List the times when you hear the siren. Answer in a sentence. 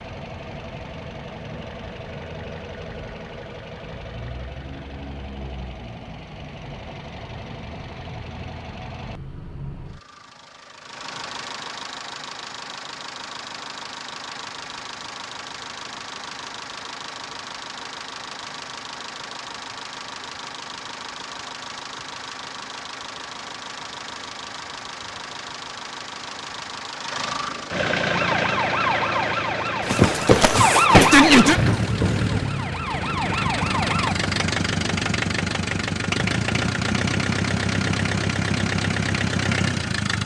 The siren can be heard from 28.1 to 34.1 s.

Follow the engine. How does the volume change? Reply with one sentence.
The volume of the engine goes up.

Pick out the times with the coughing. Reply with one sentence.
You can't hear the coughing here.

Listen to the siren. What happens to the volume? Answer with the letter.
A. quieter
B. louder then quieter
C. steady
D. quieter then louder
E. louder
B.